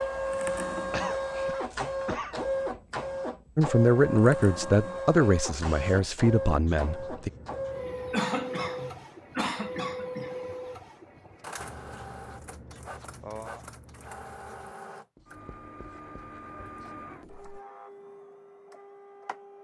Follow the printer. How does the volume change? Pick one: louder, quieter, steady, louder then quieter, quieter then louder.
quieter.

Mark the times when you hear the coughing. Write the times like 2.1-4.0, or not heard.
0.9-2.4, 8.1-10.3, 13.2-14.1.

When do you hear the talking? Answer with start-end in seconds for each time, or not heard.
3.5-7.3.